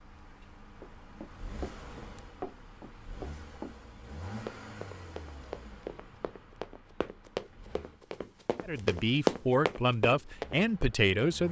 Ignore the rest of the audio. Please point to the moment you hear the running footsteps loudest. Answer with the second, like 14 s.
9 s.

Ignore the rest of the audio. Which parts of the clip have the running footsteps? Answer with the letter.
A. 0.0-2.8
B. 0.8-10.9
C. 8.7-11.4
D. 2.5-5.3
B.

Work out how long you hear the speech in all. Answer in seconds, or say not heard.
3 s.